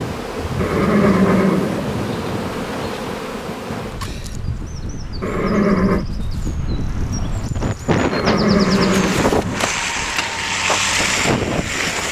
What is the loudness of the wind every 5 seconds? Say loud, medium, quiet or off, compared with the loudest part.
medium, loud, loud.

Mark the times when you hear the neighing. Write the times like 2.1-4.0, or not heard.
0.6-2.1, 5.2-6.0, 8.1-9.7.